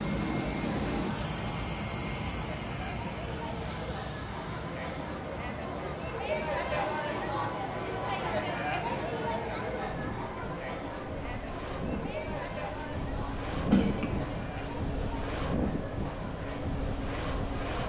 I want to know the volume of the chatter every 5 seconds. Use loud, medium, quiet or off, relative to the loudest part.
medium, loud, medium, medium.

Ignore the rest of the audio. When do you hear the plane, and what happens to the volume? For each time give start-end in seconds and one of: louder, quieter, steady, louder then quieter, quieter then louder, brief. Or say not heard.
0.0-17.8 quieter then louder.